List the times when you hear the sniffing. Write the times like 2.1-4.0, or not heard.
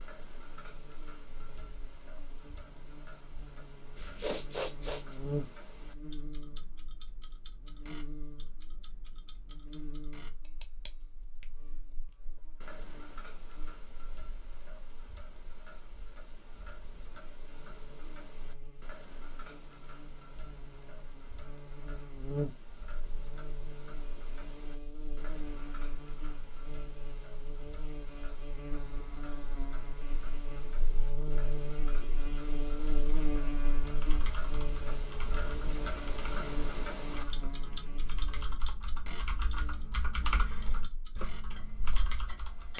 4.0-5.2.